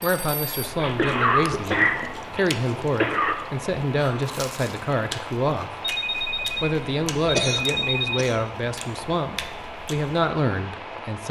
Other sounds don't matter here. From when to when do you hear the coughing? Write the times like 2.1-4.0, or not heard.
0.8-3.4, 7.3-8.3.